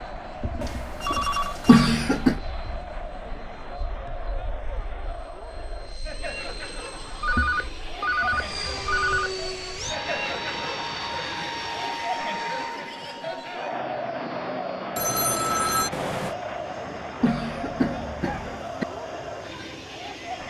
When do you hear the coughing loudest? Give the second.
2 s.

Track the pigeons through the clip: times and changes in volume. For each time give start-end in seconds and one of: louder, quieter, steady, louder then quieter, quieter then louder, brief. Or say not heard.
not heard.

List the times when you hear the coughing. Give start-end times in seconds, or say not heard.
1.6-2.4, 17.2-18.9.